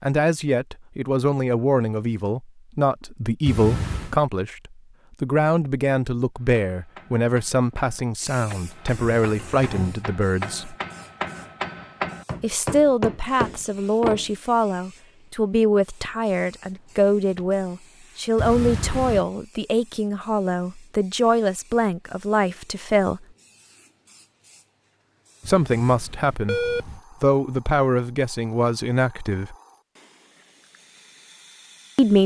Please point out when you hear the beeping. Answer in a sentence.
The beeping can be heard from 3.5 to 4.2 s, from 18.4 to 19.2 s and from 25.4 to 27.0 s.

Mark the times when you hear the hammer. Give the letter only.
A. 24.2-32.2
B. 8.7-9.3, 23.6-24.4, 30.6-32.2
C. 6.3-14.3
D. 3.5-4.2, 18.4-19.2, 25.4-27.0
C.